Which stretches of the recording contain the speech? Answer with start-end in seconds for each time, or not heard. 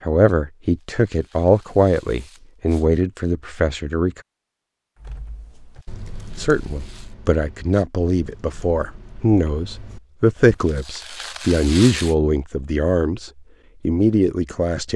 0.0-4.2, 6.3-14.9.